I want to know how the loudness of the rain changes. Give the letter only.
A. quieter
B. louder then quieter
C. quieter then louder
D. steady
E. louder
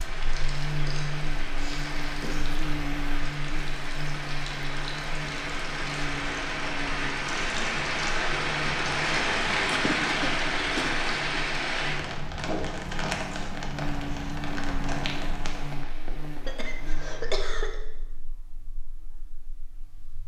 B.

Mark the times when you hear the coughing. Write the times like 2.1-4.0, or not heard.
0.7-2.6, 9.7-10.9, 16.4-17.8.